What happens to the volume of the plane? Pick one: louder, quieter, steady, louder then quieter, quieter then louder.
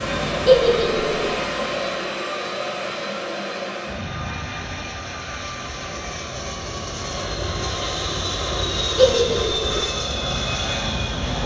quieter then louder.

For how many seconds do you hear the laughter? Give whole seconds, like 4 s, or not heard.
2 s.